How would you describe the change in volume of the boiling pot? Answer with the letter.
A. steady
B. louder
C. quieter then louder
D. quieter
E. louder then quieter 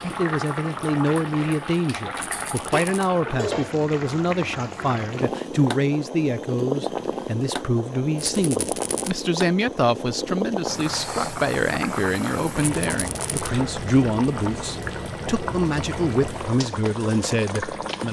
A.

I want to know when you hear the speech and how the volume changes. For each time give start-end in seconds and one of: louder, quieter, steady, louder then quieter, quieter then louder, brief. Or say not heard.
0.0-18.0 steady.